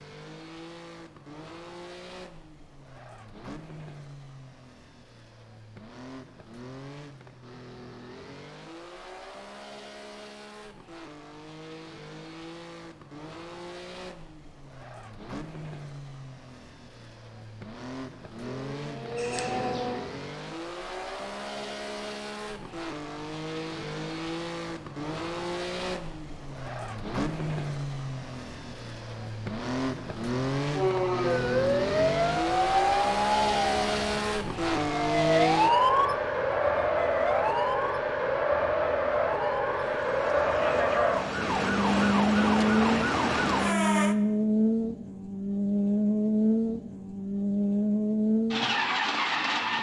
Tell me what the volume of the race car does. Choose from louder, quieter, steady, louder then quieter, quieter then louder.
louder.